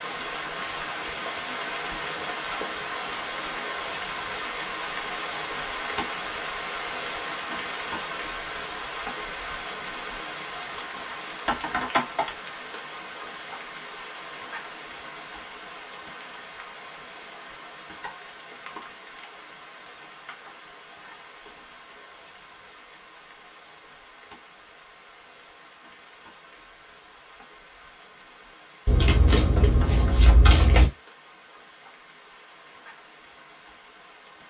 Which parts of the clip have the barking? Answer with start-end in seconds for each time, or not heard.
not heard.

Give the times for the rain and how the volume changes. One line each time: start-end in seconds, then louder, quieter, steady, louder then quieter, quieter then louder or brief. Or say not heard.
0.0-34.4 quieter.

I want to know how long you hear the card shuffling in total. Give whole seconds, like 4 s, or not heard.
2 s.